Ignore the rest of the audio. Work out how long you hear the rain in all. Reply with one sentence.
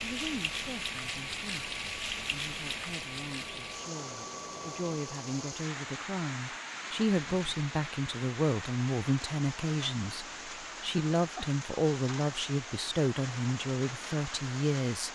You can hear the rain for 15 seconds altogether.